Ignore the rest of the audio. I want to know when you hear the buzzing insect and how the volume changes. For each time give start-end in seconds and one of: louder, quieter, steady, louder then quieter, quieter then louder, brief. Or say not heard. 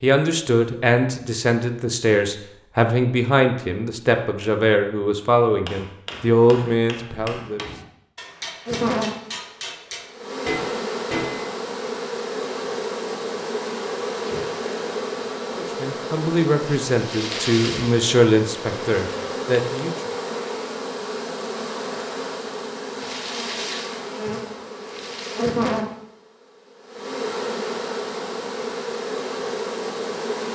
8.7-30.4 steady.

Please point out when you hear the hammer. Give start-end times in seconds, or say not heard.
5.6-11.6.